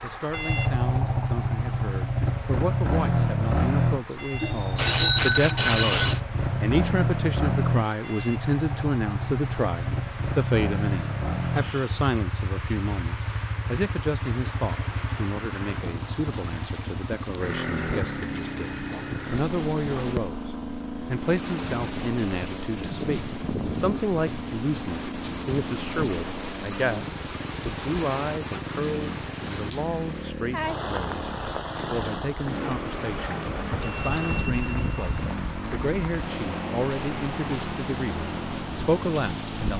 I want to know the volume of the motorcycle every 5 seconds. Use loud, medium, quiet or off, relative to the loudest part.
loud, loud, medium, medium, medium, medium, medium, medium.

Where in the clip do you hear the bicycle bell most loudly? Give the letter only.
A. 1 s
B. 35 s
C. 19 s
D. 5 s
D.